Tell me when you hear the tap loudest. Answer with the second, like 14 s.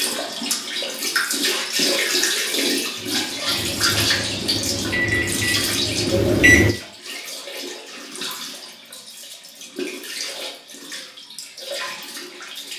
2 s.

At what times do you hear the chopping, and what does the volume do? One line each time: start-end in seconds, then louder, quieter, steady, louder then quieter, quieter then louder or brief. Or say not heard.
not heard.